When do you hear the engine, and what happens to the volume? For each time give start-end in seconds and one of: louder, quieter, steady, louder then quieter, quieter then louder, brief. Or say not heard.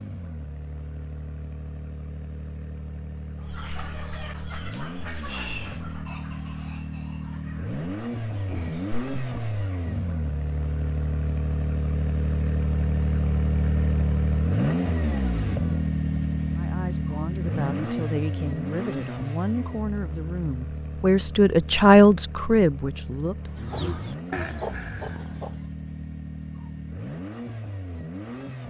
0.0-28.6 louder then quieter.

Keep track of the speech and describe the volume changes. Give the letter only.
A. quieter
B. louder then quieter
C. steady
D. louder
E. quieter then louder
B.